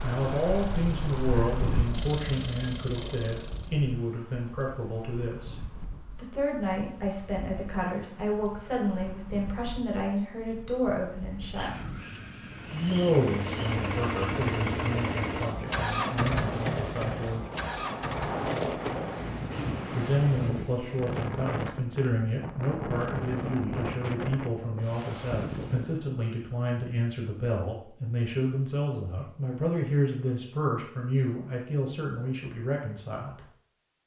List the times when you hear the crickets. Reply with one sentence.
The crickets can't be heard in this clip.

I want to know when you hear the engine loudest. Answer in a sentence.
The volume of the engine peaks at 16 seconds.